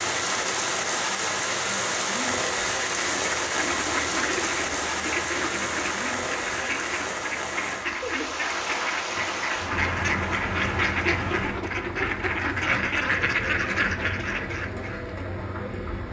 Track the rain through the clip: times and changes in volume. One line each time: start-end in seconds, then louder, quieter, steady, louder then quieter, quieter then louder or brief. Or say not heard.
0.0-16.0 quieter.